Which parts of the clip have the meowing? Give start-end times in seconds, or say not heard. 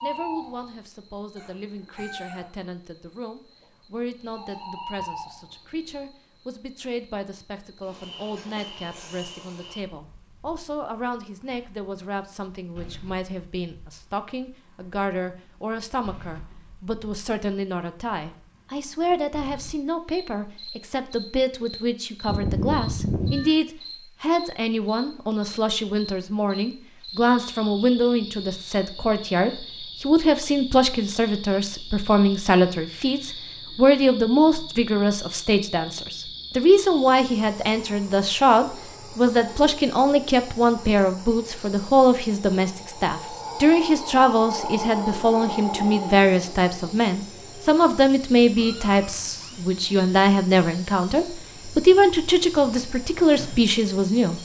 1.4-2.5, 22.2-23.5, 48.5-49.6.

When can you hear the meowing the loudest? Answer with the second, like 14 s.
23 s.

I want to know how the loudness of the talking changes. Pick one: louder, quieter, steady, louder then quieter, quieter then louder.
louder.